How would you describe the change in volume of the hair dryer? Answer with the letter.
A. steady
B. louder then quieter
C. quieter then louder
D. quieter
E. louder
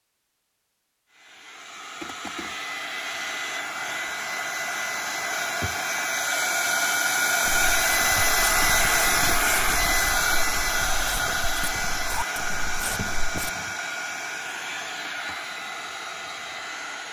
B.